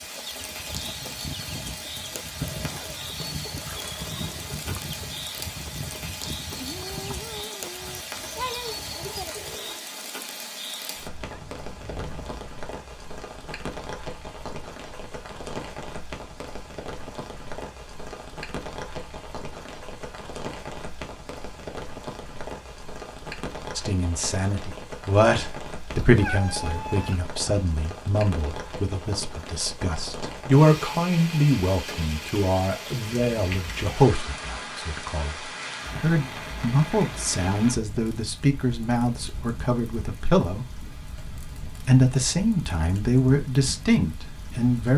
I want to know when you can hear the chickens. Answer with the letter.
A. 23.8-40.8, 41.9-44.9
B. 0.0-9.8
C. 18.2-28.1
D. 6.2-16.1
B.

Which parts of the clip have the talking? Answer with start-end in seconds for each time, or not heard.
23.8-40.8, 41.9-44.9.